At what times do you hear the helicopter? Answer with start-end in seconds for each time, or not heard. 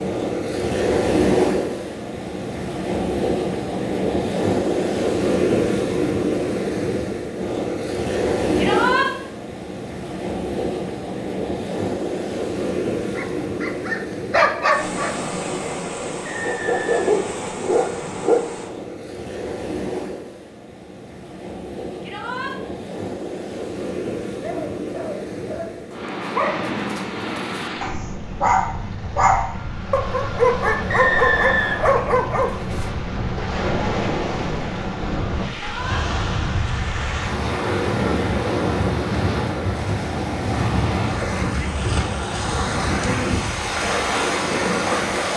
not heard.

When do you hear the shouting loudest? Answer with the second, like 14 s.
9 s.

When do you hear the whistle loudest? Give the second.
31 s.